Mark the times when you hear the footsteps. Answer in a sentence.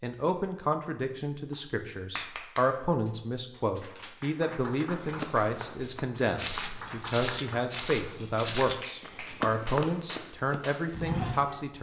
You can hear the footsteps from 4.8 to 11.4 s.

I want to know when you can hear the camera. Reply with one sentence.
You can't hear the camera here.